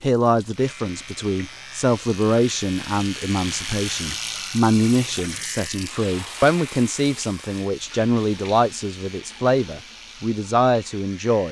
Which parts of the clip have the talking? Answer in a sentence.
The talking can be heard from 0.0 to 11.4 s.